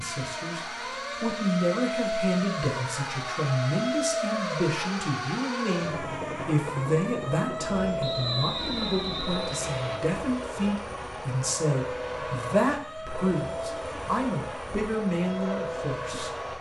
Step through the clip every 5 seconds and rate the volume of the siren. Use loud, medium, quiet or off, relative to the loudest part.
loud, loud, medium, medium.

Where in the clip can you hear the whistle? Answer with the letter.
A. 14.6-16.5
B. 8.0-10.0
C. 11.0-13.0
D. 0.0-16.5
B.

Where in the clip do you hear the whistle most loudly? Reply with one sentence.
The volume of the whistle peaks at 8 seconds.